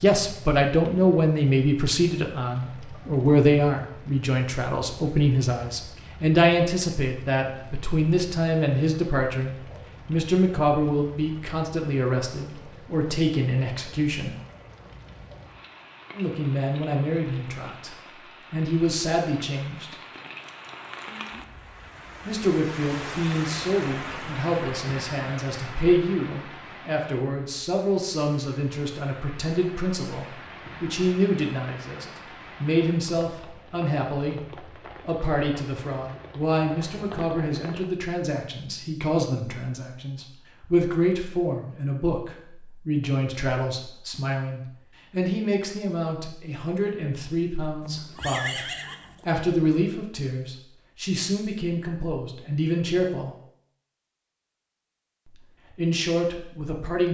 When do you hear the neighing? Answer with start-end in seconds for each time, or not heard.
47.8-49.4.